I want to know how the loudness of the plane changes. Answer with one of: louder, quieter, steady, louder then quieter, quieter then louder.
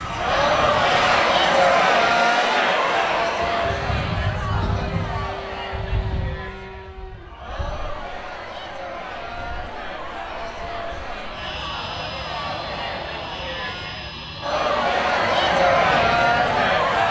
quieter then louder.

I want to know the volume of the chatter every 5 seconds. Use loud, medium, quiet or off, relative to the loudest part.
loud, quiet, medium, loud.